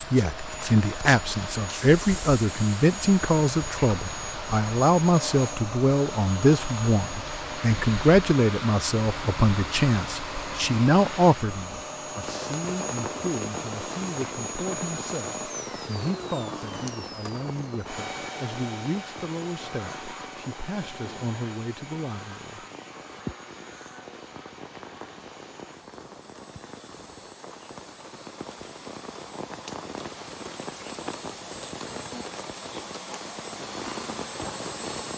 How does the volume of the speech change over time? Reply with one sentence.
The loudness of the speech goes down.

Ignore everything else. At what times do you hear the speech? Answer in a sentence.
You can hear the speech from 0.1 to 22.6 s.